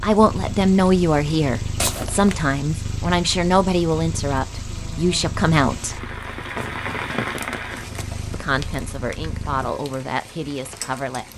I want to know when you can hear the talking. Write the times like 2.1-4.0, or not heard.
0.0-6.0, 8.3-11.2.